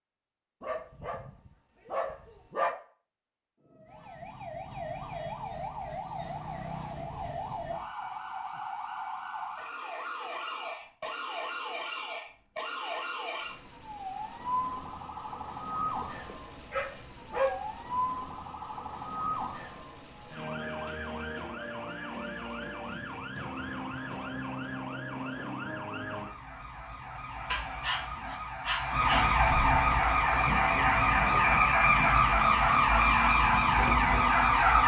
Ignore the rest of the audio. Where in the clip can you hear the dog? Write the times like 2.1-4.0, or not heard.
0.6-2.8, 16.0-17.9, 27.5-29.3.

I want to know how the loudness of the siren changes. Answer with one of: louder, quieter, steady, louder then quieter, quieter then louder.
louder.